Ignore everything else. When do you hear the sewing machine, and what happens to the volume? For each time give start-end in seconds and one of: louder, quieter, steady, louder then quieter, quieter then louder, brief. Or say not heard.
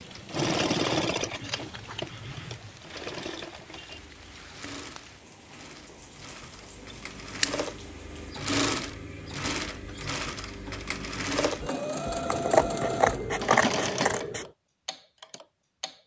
0.0-15.9 quieter then louder.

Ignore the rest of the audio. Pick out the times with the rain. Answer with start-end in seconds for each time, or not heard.
0.0-8.3.